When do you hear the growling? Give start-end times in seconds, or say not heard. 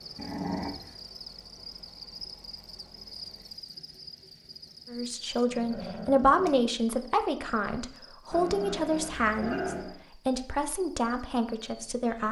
0.1-0.9, 5.5-6.7, 8.3-10.0.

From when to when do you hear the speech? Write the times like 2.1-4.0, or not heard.
4.9-12.2.